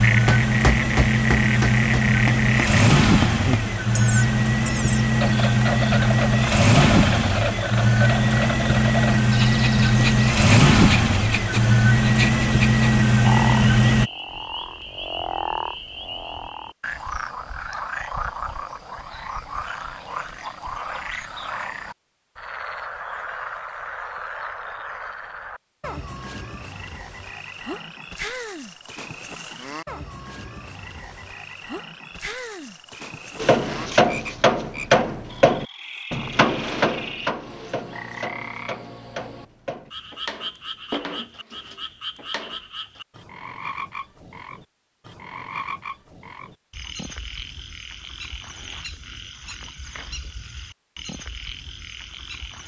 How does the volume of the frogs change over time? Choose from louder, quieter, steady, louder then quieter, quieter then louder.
quieter.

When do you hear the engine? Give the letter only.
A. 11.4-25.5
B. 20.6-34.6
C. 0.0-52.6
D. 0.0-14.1
D.